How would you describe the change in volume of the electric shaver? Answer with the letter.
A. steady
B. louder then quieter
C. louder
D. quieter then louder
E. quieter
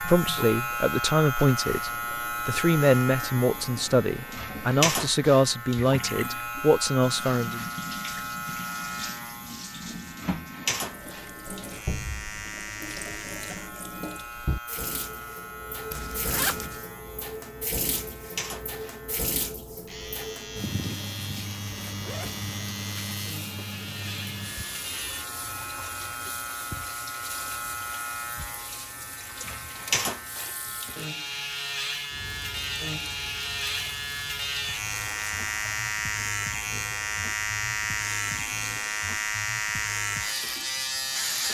D.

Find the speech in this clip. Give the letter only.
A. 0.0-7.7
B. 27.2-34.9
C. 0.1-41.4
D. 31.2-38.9
A.